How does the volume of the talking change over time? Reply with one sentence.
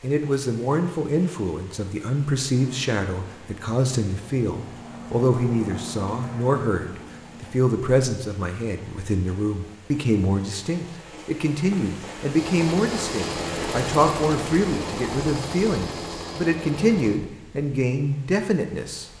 The volume of the talking stays about the same.